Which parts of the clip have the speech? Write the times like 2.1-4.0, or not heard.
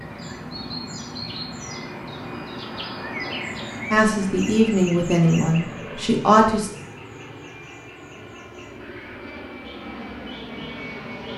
3.9-6.7.